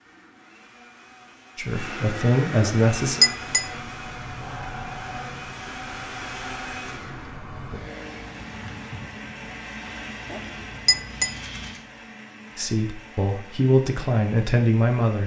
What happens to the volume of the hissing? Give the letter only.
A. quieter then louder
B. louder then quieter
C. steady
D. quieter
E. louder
D.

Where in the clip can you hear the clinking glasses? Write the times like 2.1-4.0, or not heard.
2.6-3.6, 10.3-11.3.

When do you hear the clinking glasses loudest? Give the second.
3 s.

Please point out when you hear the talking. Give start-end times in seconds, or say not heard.
1.6-3.2, 12.6-15.2.